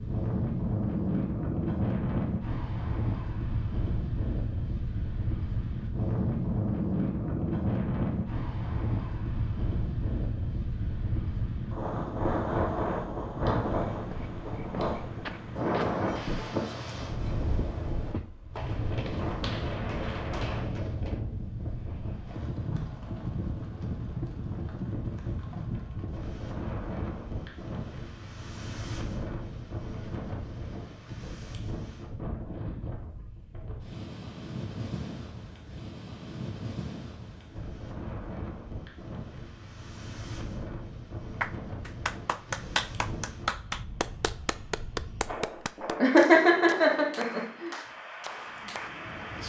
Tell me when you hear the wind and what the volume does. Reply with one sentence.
The wind can be heard from 0.0 to 49.4 s, getting quieter.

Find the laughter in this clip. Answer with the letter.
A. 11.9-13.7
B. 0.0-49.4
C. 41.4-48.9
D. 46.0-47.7
D.